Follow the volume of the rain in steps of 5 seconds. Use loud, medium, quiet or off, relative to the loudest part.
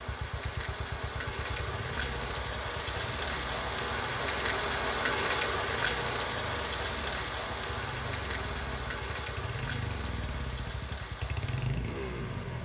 loud, loud, medium.